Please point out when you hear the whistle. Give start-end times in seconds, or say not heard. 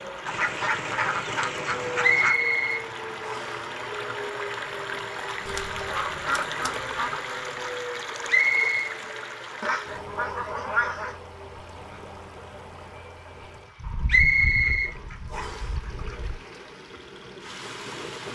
2.0-3.6, 8.2-8.9, 14.1-15.7.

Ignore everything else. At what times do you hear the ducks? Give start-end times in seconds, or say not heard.
0.2-2.4, 5.5-7.2, 9.6-11.2, 13.8-16.4.